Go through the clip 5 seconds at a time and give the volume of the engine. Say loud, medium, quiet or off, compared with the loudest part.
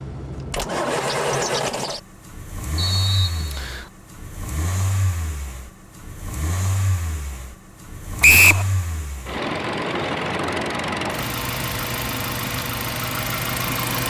loud, medium, loud.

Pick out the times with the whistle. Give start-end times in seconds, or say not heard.
2.8-3.9, 8.2-8.7.